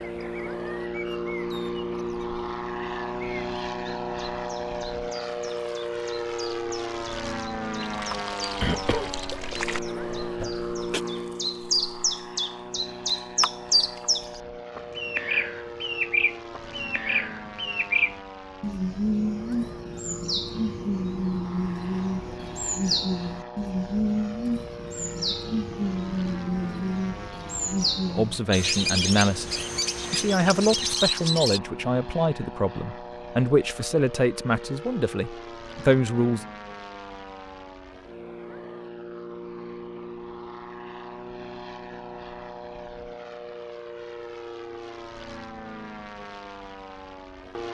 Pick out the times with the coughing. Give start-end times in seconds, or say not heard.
8.6-11.0.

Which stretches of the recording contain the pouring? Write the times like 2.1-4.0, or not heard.
7.8-9.8.